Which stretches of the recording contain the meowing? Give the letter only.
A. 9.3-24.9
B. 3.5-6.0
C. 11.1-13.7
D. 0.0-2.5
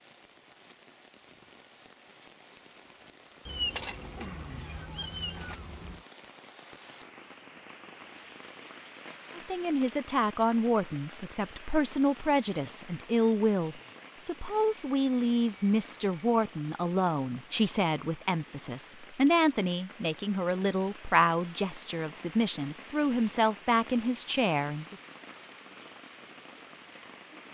B.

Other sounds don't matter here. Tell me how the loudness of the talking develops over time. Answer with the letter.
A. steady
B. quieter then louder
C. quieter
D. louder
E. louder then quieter
A.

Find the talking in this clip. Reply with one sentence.
You can hear the talking from 9.3 to 24.9 s.